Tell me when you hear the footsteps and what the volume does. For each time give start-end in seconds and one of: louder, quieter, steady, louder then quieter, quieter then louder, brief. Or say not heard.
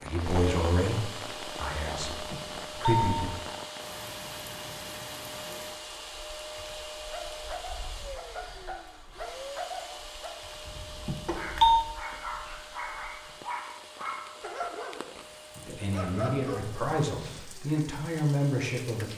not heard.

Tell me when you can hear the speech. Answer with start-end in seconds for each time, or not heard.
0.0-3.4, 15.7-19.1.